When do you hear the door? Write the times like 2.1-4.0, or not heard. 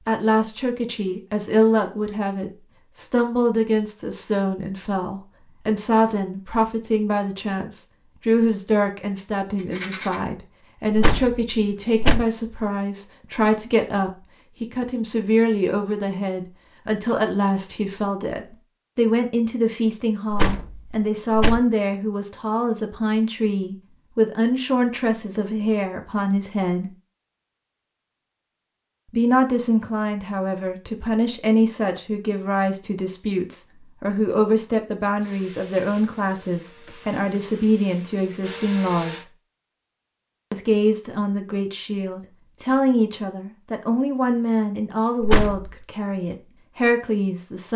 10.9-12.2, 20.3-21.6, 45.2-45.7.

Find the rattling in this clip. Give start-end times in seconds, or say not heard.
9.6-10.2.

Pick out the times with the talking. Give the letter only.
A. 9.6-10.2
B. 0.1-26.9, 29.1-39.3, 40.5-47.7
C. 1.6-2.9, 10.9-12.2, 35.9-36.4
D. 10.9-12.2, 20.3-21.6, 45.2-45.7
B.